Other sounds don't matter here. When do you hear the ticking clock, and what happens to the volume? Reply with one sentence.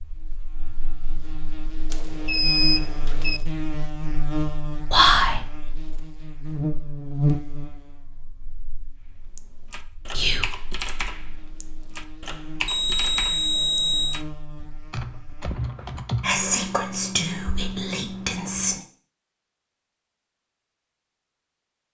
The ticking clock can't be heard in this clip.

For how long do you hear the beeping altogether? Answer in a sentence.
The beeping can be heard for 3 seconds in total.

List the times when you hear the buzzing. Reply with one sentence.
You can hear the buzzing from 0.0 to 15.5 s.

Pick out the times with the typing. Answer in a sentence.
You can hear the typing from 9.1 to 16.4 s.